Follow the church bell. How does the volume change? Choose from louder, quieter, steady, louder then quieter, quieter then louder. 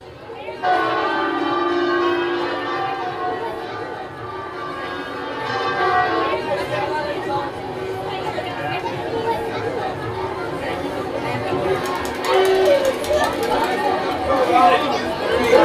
quieter then louder.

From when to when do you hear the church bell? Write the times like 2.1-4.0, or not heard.
0.6-6.3.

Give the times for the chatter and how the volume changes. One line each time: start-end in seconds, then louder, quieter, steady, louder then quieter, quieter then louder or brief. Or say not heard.
0.0-15.6 louder.